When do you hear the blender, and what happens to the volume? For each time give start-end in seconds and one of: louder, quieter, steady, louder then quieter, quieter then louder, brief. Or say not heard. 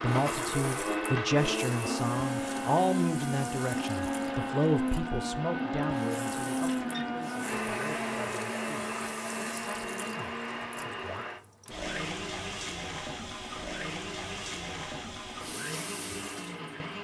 0.0-17.0 quieter.